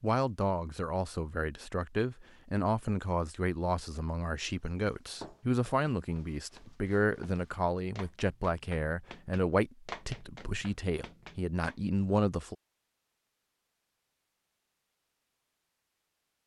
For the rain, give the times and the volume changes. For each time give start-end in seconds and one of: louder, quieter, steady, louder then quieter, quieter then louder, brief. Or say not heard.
not heard.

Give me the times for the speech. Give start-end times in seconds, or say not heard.
0.0-12.6.